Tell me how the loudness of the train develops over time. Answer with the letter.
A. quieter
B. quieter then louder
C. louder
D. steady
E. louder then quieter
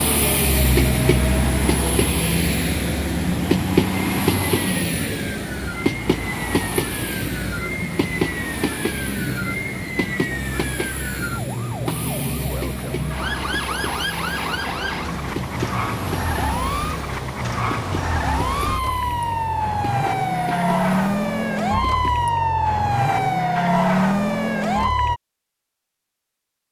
A.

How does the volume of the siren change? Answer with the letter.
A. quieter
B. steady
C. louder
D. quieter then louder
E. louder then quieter
C.